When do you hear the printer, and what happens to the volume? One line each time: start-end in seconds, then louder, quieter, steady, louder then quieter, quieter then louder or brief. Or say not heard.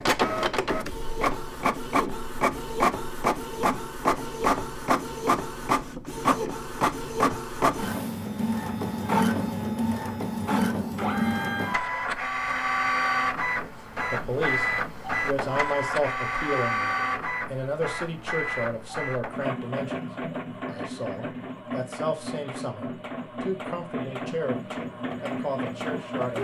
0.0-26.3 quieter.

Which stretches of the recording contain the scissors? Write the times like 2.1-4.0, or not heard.
not heard.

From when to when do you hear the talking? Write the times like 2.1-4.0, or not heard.
13.6-26.3.